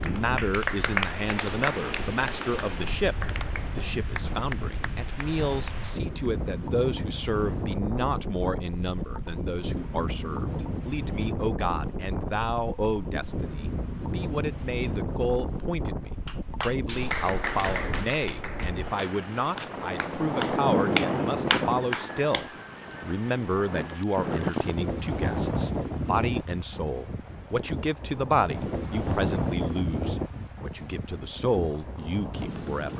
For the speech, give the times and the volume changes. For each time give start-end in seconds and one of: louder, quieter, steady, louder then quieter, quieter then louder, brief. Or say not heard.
0.0-32.9 steady.